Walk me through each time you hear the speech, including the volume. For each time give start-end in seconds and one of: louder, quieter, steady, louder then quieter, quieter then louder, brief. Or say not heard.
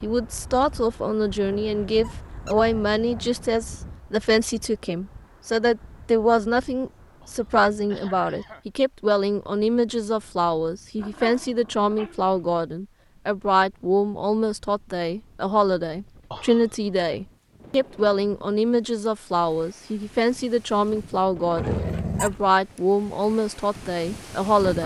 0.0-24.8 steady.